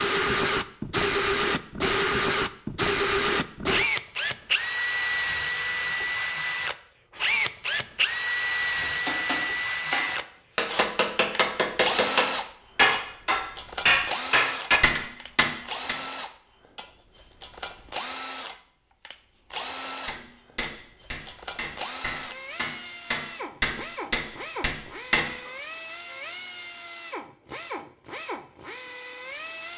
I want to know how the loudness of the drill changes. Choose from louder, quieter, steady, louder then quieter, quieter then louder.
quieter.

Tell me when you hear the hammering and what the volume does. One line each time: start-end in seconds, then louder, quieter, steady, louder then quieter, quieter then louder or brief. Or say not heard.
8.8-15.9 louder
20.1-25.5 louder then quieter.